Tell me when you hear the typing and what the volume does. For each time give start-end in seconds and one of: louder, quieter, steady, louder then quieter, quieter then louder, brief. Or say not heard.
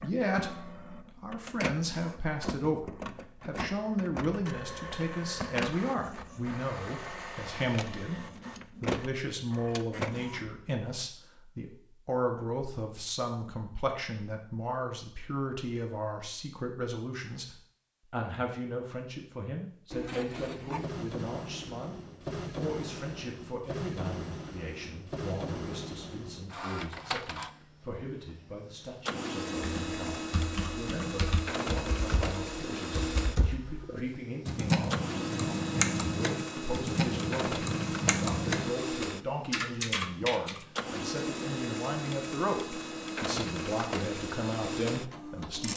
29.6-38.7 louder
39.5-40.6 brief.